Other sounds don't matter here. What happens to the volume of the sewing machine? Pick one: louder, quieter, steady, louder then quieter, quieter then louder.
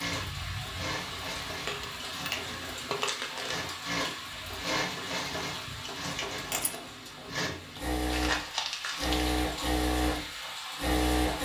louder.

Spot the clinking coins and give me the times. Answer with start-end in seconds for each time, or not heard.
1.6-3.1, 6.3-6.8.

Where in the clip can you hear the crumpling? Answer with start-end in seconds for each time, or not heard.
3.0-3.6, 8.1-9.3.